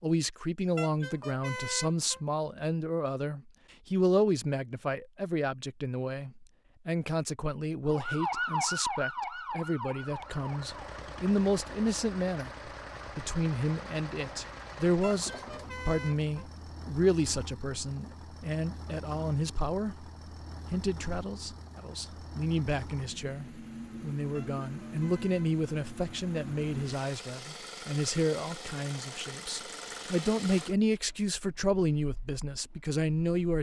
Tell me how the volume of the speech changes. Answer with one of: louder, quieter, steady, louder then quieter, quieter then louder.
steady.